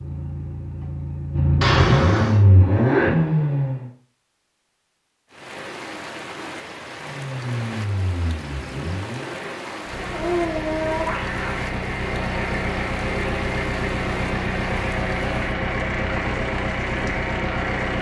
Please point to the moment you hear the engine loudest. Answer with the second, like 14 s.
3 s.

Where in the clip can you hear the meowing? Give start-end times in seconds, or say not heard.
1.6-2.5, 9.9-11.7.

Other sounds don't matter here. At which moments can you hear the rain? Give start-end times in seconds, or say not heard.
5.3-17.9.